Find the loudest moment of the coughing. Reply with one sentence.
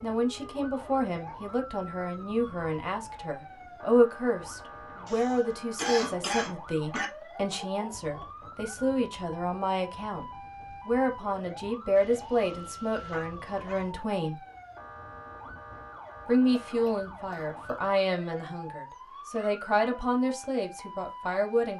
The loudest moment of the coughing is at 6 seconds.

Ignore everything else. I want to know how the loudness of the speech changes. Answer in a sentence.
The volume of the speech stays about the same.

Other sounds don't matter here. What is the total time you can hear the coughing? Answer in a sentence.
You can hear the coughing for 3 seconds altogether.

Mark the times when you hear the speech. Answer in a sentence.
You can hear the speech from 0.0 to 14.4 s and from 16.2 to 21.7 s.